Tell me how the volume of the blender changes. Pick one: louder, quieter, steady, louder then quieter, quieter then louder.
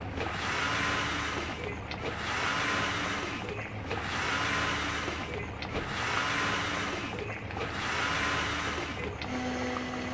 steady.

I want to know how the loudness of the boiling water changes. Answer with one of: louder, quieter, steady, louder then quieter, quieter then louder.
steady.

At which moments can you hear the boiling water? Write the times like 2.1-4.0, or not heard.
0.0-10.0.